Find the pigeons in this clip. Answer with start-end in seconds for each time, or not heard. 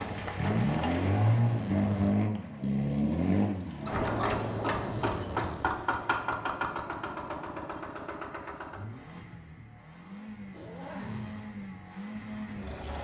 not heard.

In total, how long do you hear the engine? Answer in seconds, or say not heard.
13 s.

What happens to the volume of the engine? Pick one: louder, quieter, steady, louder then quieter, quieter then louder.
quieter.